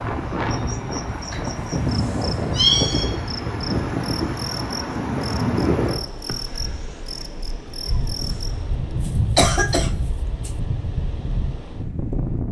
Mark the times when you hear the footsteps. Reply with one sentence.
You can't hear the footsteps here.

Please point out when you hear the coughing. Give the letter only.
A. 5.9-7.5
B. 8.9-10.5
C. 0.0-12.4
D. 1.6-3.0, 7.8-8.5
B.